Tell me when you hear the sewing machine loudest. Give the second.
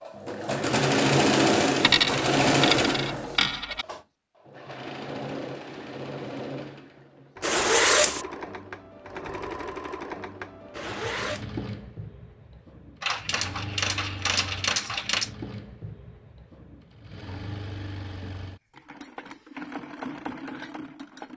1 s.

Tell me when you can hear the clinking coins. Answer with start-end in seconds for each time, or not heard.
1.8-3.9, 13.0-15.3.